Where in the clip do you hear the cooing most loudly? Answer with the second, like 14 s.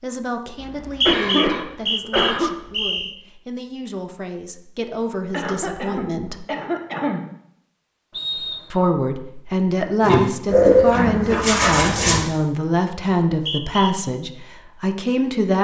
11 s.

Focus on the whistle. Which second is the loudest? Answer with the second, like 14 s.
1 s.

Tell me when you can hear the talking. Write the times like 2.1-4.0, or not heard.
0.0-6.5, 8.7-15.5.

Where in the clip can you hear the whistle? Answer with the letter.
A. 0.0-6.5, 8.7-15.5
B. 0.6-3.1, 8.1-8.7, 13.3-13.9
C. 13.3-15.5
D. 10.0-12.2
B.